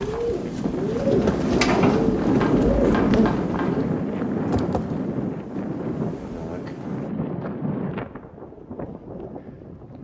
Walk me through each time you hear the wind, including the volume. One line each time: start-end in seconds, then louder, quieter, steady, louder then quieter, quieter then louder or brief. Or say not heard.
0.0-9.9 quieter.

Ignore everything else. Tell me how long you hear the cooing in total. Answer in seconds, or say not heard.
4 s.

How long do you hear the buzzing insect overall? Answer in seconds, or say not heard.
7 s.